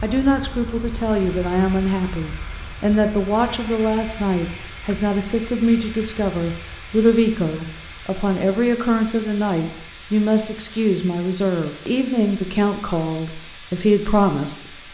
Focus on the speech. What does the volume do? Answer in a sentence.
The volume of the speech stays about the same.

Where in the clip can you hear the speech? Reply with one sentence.
You can hear the speech from 0.0 to 14.7 s.